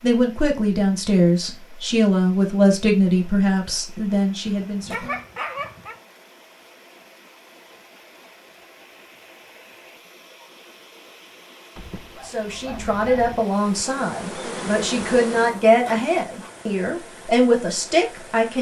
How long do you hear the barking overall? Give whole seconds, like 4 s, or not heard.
3 s.